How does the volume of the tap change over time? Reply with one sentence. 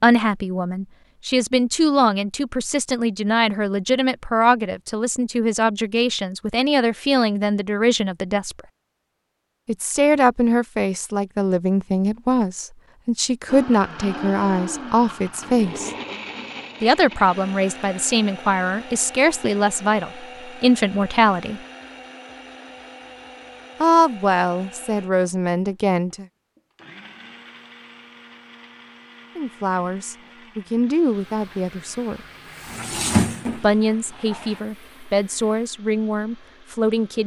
The loudness of the tap goes up, then down.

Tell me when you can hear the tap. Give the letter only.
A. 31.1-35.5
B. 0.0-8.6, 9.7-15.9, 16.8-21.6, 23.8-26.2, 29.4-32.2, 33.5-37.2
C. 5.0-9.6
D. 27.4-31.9
A.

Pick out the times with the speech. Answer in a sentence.
You can hear the speech from 0.0 to 8.6 s, from 9.7 to 15.9 s, from 16.8 to 21.6 s, from 23.8 to 26.2 s, from 29.4 to 32.2 s and from 33.5 to 37.2 s.